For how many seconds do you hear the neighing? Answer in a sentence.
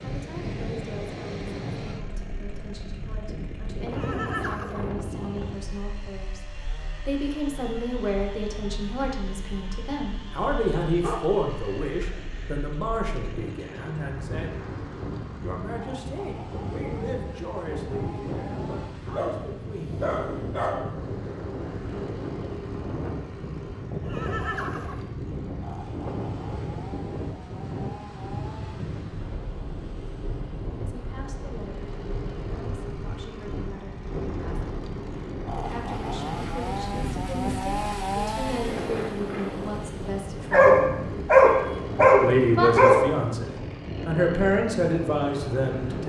You can hear the neighing for 5 seconds altogether.